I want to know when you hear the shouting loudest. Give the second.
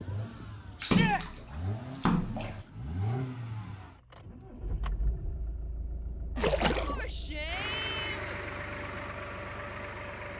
1 s.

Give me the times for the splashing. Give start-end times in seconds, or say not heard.
0.8-2.6, 6.3-7.1.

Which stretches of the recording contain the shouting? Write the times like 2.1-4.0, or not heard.
0.8-1.2, 6.8-8.4.